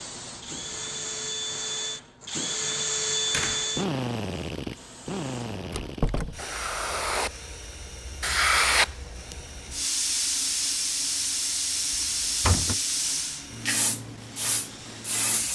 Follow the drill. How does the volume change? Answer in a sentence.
The volume of the drill goes down.